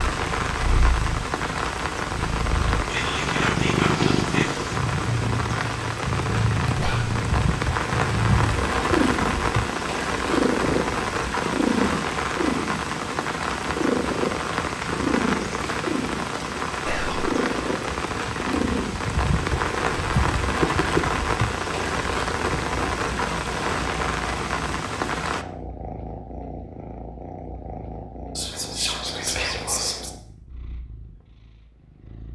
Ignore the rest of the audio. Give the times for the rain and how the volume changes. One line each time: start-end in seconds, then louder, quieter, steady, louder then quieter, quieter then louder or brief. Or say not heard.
0.0-25.4 steady.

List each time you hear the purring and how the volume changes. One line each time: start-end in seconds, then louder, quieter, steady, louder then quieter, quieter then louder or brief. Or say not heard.
0.1-32.3 quieter.